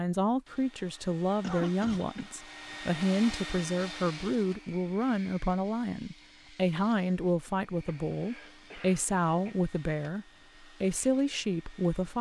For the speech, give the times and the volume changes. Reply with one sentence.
The speech can be heard from 0.0 to 12.1 s, at a steady volume.